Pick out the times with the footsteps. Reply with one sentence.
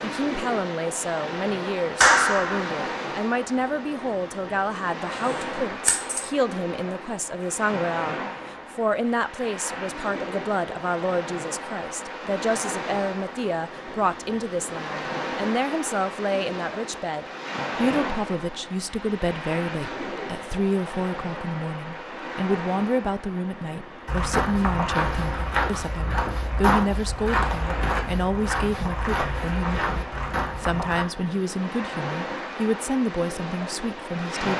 You can hear the footsteps from 24.1 to 31.1 s.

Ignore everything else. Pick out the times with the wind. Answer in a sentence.
The wind can be heard from 0.0 to 34.5 s.